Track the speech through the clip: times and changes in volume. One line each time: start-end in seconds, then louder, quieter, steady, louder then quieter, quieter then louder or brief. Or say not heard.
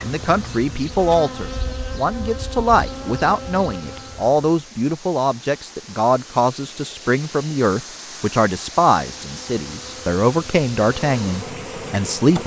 0.0-12.4 steady.